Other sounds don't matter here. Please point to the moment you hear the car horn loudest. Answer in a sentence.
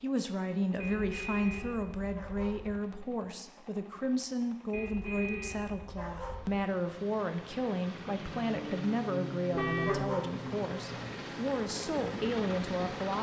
The volume of the car horn peaks at 10 seconds.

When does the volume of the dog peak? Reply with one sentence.
The volume of the dog peaks at 10 seconds.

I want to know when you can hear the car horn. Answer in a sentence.
The car horn can be heard from 0.8 to 2.8 s, from 4.7 to 6.5 s and from 9.6 to 10.1 s.